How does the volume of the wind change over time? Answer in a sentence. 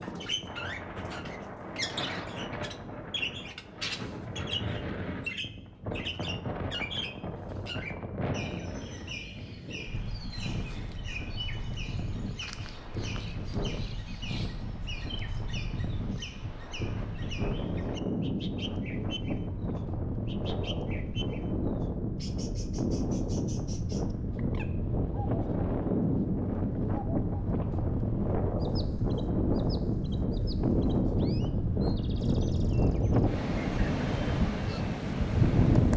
The volume of the wind goes up.